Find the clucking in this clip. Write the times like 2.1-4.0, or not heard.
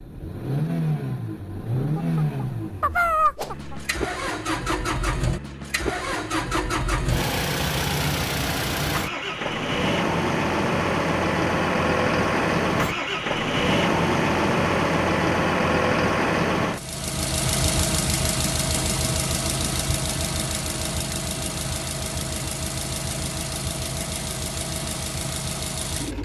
1.9-3.9.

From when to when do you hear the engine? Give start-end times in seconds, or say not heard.
0.0-26.2.